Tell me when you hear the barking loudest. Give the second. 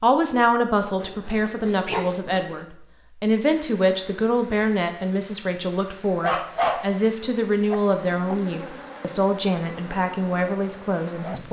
7 s.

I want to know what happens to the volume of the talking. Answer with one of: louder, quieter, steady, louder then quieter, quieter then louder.
steady.